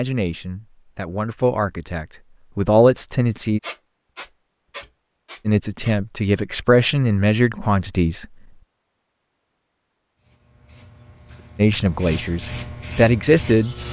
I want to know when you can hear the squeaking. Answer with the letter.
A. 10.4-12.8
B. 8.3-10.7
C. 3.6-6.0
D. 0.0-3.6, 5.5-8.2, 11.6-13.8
C.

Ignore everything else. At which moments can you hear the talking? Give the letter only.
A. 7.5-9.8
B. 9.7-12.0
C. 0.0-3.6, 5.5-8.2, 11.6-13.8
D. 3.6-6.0
C.